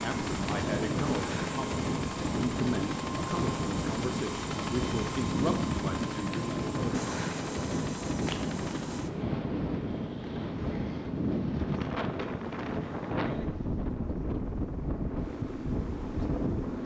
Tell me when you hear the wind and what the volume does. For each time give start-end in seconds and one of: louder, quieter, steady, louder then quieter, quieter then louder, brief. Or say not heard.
0.0-16.8 steady.